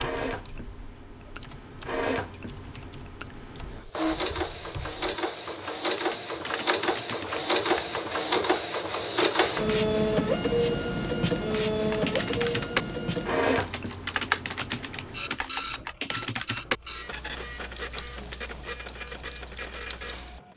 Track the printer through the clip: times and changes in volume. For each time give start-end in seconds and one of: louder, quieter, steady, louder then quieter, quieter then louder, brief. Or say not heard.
0.0-20.5 louder then quieter.